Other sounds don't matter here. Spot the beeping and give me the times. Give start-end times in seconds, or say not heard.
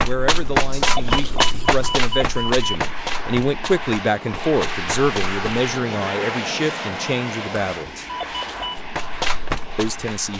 0.2-2.8, 7.8-8.8.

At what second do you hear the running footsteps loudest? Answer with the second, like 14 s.
1 s.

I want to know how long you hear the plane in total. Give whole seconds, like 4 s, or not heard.
10 s.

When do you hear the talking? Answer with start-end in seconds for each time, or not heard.
0.0-8.0, 9.8-10.3.